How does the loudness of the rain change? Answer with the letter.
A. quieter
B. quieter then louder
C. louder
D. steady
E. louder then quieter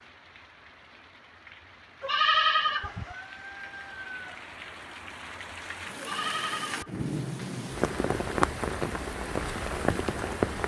C.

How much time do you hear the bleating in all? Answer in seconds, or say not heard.
2 s.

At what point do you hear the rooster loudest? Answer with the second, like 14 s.
4 s.